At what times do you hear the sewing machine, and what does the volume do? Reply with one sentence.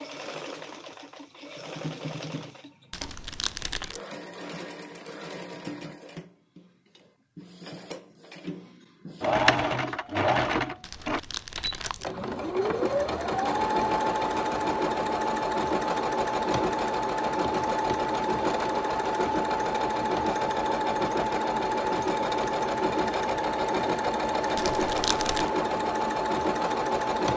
You can hear the sewing machine from 0.0 to 27.3 s, getting louder.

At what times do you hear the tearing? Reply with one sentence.
The tearing can be heard from 2.9 to 4.0 s, from 10.8 to 12.2 s and from 24.6 to 25.5 s.